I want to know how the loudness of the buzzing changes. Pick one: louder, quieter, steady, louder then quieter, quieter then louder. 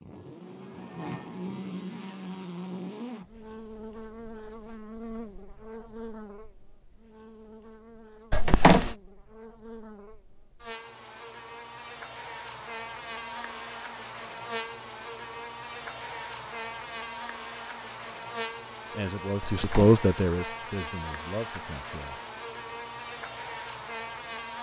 quieter then louder.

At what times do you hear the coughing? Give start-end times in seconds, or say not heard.
8.3-8.9, 19.4-20.0.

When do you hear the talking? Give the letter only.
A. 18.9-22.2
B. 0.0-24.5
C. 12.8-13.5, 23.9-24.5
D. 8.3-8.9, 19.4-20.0
A.